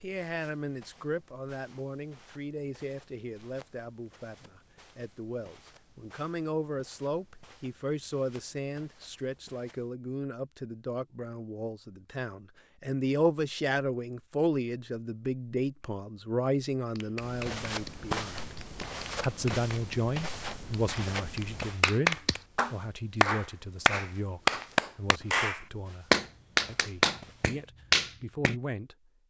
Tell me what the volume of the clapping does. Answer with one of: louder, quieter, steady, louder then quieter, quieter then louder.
louder.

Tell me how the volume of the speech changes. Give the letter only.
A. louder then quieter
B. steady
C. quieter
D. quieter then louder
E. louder
A.